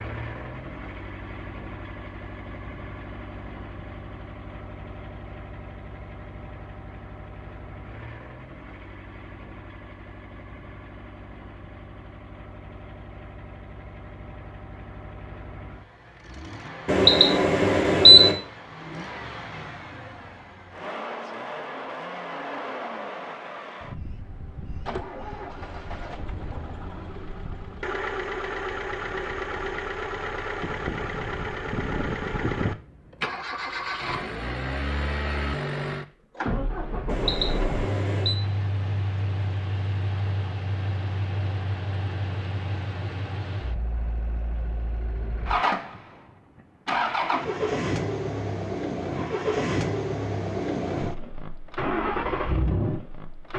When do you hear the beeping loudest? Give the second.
18 s.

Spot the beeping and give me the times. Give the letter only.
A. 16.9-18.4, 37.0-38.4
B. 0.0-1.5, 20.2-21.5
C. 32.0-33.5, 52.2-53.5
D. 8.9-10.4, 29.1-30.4
A.